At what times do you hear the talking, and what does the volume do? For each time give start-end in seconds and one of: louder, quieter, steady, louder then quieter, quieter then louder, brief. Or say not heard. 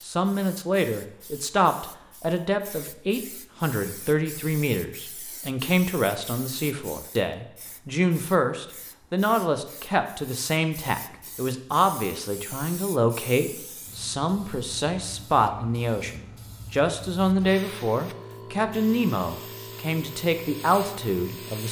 0.0-21.6 steady.